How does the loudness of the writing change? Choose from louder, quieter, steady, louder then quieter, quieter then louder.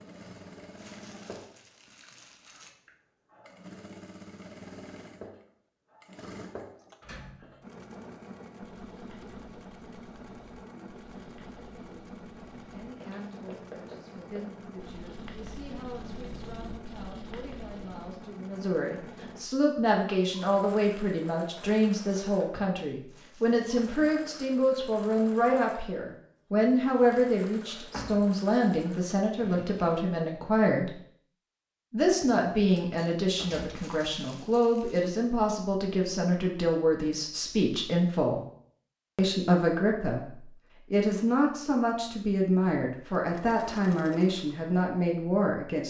louder.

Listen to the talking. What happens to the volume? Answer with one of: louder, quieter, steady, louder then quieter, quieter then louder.
louder.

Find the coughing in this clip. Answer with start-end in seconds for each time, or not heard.
not heard.